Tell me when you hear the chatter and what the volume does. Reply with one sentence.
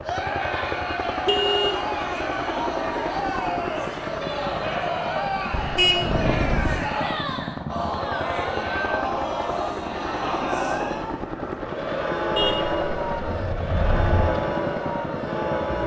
The chatter can be heard from 0.0 to 15.8 s, at a steady volume.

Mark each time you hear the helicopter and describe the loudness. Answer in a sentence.
The helicopter can be heard from 0.0 to 15.8 s, at a steady volume.